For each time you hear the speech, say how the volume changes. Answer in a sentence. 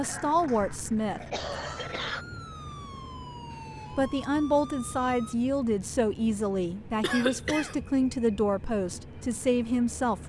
You can hear the speech briefly from 0.0 to 1.6 s; and from 3.9 to 10.2 s, at a steady volume.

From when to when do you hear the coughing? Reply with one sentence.
You can hear the coughing from 0.0 to 2.2 s and from 7.0 to 7.8 s.